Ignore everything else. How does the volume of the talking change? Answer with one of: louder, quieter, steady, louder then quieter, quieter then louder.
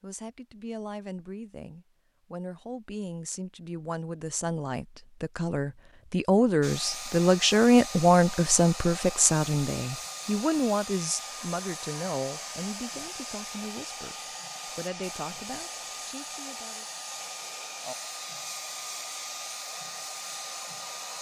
louder then quieter.